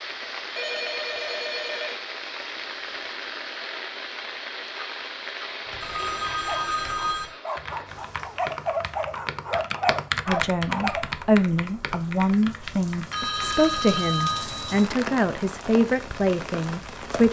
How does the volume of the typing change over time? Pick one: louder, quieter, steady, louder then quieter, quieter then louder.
louder then quieter.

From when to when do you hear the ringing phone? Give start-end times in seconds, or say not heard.
0.6-1.9, 5.8-7.3, 13.1-14.9.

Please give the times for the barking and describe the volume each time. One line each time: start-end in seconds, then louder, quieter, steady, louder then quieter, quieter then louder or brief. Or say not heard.
6.2-11.2 louder.